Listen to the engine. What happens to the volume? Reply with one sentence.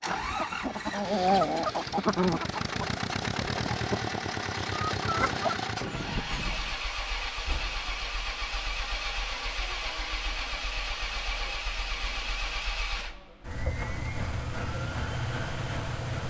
The loudness of the engine stays about the same.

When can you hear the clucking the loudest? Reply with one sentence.
The volume of the clucking peaks at 1 second.